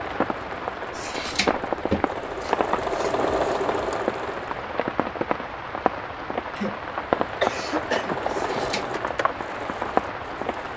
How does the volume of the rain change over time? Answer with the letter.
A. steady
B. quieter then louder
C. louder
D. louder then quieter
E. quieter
A.